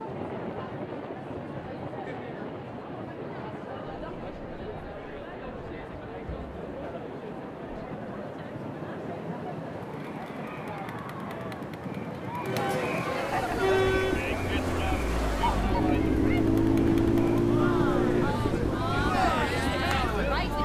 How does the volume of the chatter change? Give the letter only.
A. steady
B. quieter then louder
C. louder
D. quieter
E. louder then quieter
C.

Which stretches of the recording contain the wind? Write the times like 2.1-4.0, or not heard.
0.0-20.6.